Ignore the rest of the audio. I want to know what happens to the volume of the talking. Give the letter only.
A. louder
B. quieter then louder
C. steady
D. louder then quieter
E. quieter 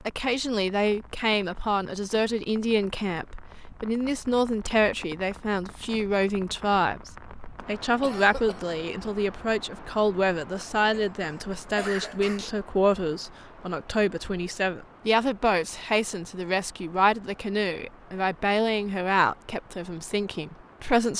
C.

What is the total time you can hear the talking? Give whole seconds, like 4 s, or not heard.
21 s.